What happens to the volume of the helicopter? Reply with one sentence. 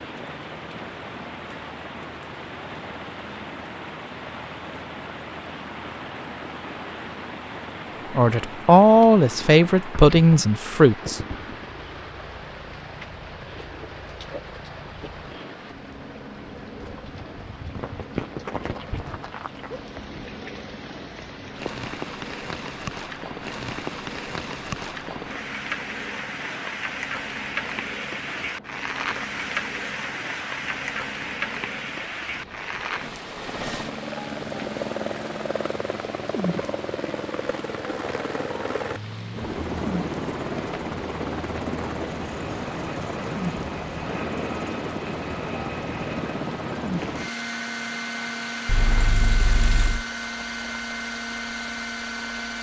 The loudness of the helicopter goes up.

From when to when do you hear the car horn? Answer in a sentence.
The car horn can be heard from 48.6 to 50.0 s.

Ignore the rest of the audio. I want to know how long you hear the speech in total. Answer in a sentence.
You can hear the speech for 3 seconds altogether.